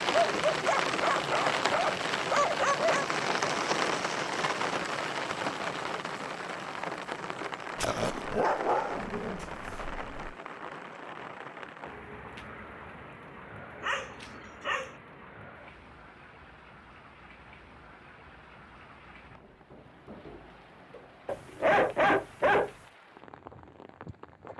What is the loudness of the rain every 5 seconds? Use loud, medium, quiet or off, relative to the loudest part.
loud, medium, quiet, quiet, quiet.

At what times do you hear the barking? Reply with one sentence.
The barking can be heard from 0.2 to 3.0 s, from 7.8 to 10.3 s, from 13.8 to 14.9 s and from 21.2 to 22.7 s.